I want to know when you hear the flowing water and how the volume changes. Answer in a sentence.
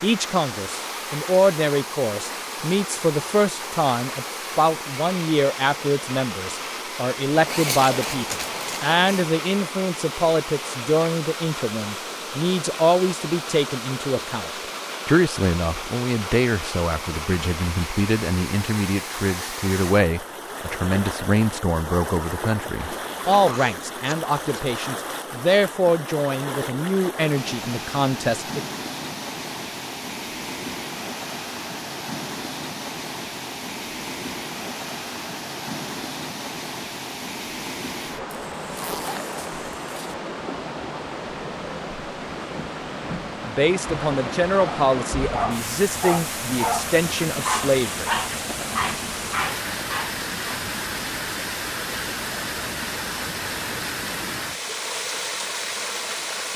You can hear the flowing water from 0.0 to 56.5 s, at a steady volume.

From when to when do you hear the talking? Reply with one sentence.
You can hear the talking from 0.0 to 28.6 s and from 43.5 to 48.1 s.